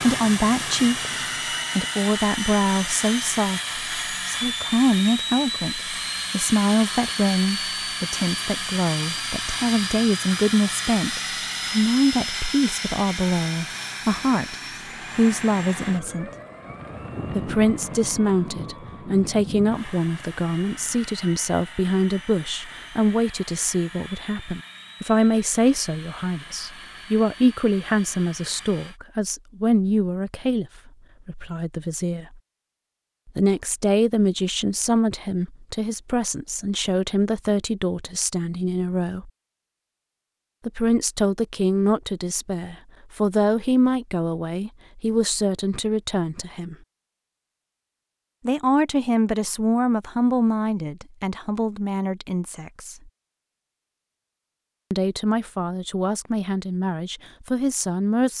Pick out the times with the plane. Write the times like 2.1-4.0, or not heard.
0.0-29.0.